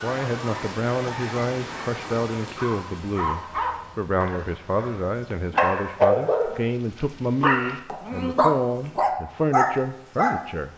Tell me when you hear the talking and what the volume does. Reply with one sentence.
You can hear the talking from 0.0 to 10.7 s, at a steady volume.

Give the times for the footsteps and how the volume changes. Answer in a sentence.
The footsteps can't be heard in this clip.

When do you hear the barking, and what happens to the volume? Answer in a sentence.
The barking can be heard from 0.0 to 10.5 s, getting louder.